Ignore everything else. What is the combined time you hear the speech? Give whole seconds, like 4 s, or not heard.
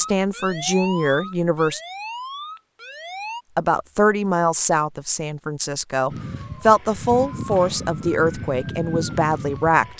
8 s.